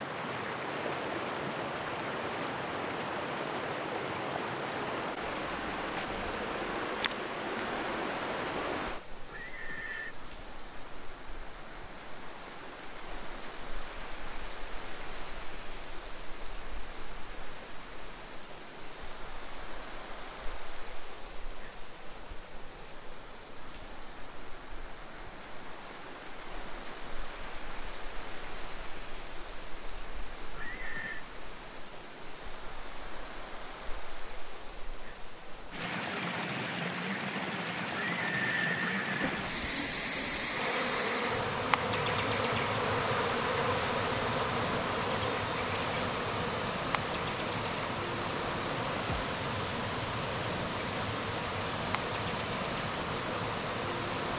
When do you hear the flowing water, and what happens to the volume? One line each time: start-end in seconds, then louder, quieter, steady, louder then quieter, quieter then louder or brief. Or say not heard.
0.0-54.3 quieter then louder.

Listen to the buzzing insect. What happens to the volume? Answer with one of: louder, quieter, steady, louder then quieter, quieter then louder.
quieter.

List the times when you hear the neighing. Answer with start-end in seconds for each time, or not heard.
9.2-10.2, 30.5-31.2, 37.9-39.5.